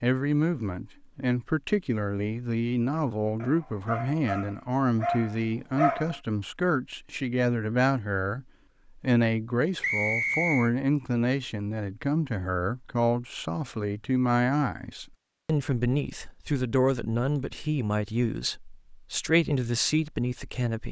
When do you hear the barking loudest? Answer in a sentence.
The loudest moment of the barking is at 6 seconds.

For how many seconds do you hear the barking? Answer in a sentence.
You can hear the barking for 3 seconds altogether.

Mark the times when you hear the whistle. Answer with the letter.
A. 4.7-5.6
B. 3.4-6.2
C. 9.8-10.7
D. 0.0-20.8
C.